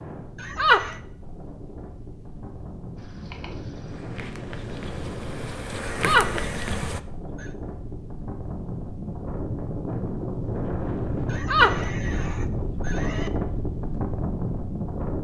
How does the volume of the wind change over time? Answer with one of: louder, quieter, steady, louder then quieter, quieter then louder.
louder.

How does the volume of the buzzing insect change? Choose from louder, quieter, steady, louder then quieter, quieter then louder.
louder.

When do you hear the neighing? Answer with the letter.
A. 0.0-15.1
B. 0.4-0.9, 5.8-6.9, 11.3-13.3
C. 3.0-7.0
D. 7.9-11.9
B.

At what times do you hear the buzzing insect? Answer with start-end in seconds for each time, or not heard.
3.0-7.0.